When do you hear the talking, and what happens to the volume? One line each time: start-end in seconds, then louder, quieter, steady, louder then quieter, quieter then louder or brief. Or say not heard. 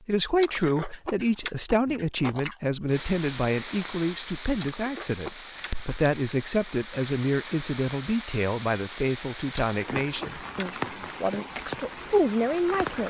0.1-13.0 steady.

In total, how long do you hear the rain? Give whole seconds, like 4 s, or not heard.
10 s.